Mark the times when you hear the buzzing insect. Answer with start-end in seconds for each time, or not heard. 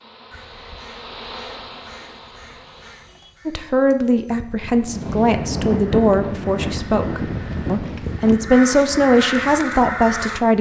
0.0-3.1.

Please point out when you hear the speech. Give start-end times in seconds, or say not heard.
3.5-10.5.